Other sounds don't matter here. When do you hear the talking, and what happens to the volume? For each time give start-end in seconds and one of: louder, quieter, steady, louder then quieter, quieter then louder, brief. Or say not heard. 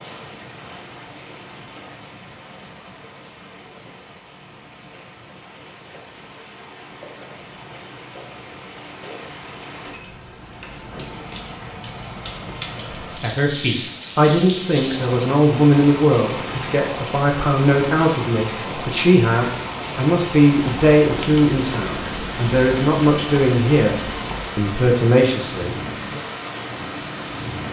13.2-26.2 steady.